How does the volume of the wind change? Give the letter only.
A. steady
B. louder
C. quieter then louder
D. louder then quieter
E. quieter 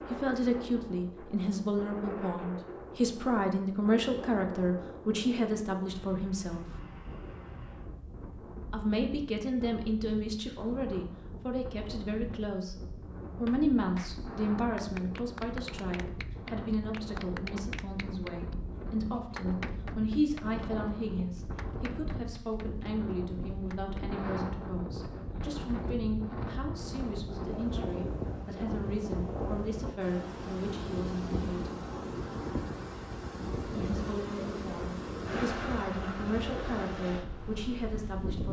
B.